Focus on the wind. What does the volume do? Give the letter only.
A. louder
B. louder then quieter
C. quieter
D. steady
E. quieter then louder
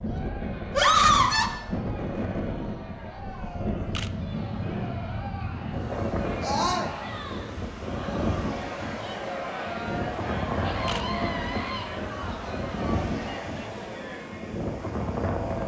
D.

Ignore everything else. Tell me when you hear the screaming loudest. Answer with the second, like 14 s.
1 s.